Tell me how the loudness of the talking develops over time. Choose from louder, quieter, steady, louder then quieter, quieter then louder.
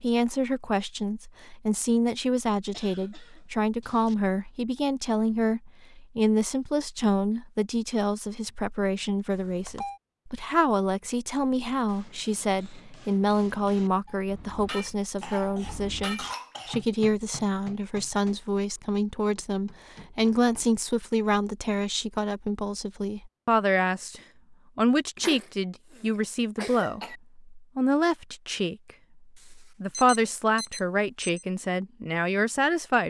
steady.